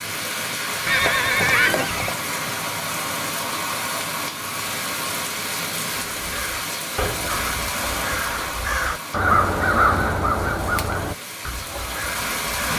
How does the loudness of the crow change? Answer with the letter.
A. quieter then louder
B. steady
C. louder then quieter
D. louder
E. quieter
C.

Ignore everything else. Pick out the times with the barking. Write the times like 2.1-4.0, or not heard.
not heard.